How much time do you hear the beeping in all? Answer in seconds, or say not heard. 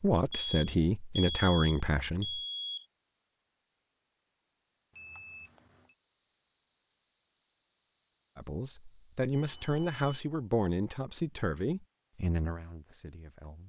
4 s.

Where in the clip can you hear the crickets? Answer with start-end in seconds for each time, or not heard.
0.0-10.2.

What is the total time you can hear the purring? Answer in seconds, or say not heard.
not heard.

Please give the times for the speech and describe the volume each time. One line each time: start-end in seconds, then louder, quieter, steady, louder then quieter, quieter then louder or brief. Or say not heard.
0.0-2.4 brief
8.3-13.6 quieter.